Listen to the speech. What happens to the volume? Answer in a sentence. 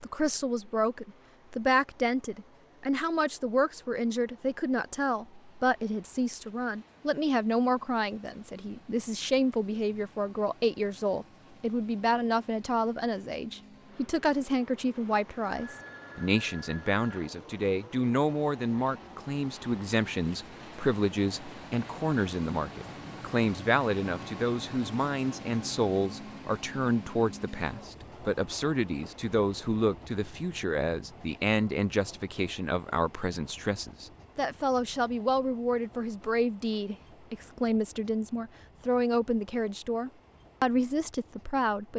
The loudness of the speech stays about the same.